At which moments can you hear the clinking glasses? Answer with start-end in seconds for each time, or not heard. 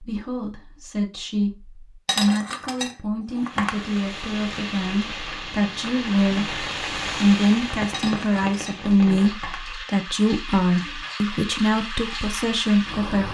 2.0-3.9, 7.9-9.8.